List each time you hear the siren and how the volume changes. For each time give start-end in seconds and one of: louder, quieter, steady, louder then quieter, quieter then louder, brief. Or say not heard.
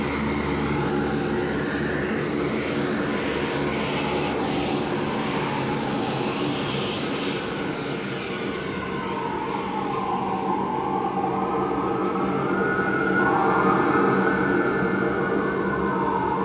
0.0-16.4 louder.